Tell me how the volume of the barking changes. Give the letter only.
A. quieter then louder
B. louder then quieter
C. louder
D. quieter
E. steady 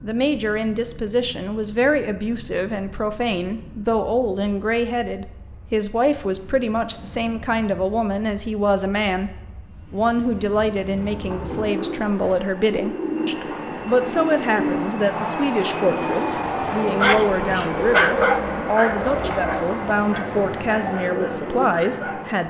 D.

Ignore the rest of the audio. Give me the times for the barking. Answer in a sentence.
The barking can be heard from 17.0 to 22.4 s.